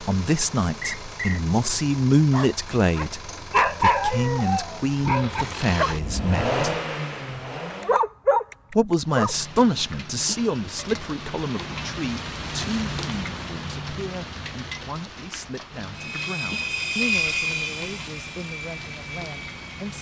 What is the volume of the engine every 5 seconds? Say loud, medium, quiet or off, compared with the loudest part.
medium, loud, off, loud.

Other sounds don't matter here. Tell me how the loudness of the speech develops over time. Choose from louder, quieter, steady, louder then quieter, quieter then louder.
quieter.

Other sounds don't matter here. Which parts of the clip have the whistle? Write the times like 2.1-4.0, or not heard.
0.8-1.4.